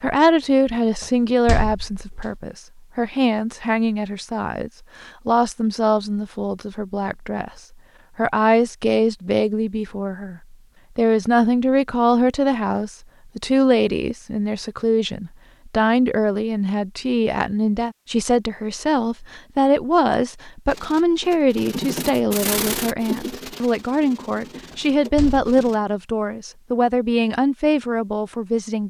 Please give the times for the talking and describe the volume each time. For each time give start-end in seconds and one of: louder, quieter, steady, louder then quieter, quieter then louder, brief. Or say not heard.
0.0-28.8 steady.